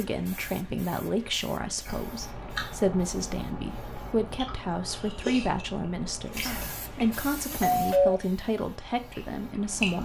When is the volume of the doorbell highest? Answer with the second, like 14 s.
8 s.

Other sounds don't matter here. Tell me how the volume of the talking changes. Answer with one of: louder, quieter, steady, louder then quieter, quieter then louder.
steady.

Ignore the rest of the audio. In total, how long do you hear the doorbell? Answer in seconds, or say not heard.
2 s.